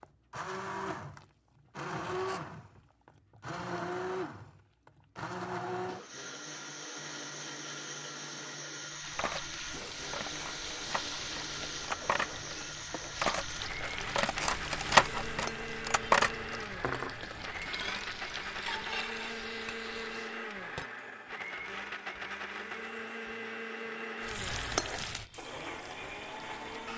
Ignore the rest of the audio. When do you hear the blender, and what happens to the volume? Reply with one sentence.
The blender can be heard from 0.0 to 26.9 s, at a steady volume.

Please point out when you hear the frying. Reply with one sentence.
You can hear the frying from 8.9 to 20.4 s and from 24.2 to 26.9 s.